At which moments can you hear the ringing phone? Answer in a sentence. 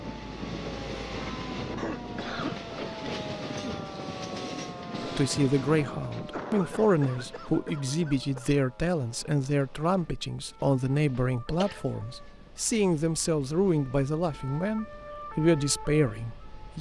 You can't hear the ringing phone here.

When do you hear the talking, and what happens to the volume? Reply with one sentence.
The talking can be heard from 5.0 to 16.7 s, at a steady volume.